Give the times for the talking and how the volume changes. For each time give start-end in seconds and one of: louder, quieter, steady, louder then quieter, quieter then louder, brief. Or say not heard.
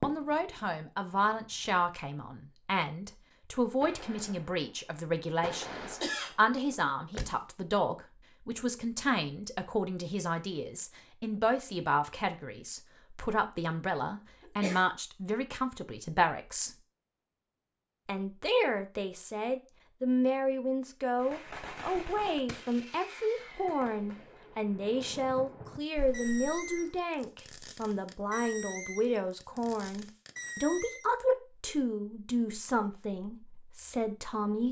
0.0-16.7 steady
18.1-34.6 steady.